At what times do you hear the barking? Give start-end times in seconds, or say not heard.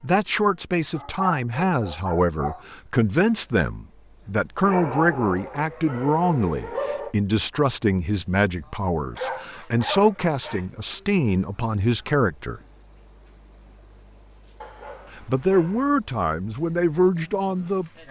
0.9-2.6, 4.6-7.2, 9.2-11.0, 14.6-15.9.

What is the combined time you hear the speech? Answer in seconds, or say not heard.
15 s.